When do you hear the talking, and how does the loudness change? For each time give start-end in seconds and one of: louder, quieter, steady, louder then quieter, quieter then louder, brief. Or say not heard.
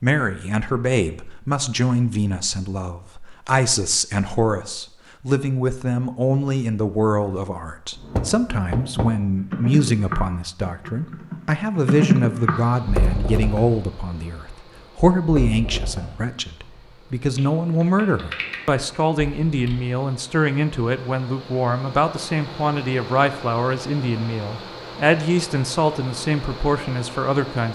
0.0-27.7 steady.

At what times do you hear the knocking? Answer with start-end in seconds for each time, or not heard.
8.1-9.1.